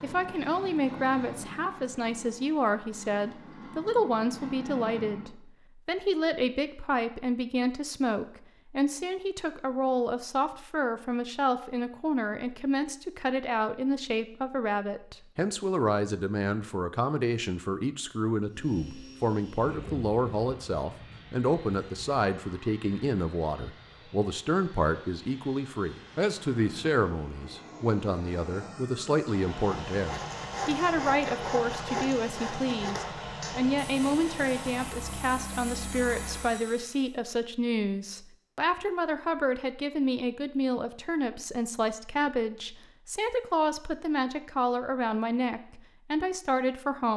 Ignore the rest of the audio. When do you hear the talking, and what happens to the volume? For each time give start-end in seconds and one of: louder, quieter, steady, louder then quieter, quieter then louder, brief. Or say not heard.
0.0-47.1 steady.